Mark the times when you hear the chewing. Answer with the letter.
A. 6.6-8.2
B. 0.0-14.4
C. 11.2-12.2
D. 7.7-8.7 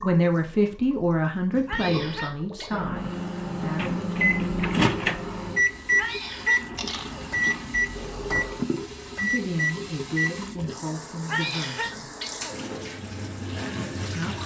A.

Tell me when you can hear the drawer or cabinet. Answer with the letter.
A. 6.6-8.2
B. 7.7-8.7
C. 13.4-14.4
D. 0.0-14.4
B.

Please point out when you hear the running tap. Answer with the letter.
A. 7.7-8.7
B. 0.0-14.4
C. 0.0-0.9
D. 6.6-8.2
B.